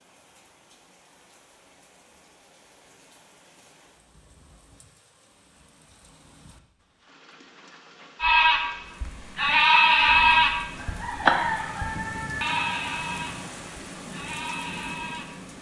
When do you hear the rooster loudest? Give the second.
11 s.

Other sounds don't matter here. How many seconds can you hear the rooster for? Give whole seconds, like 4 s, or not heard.
3 s.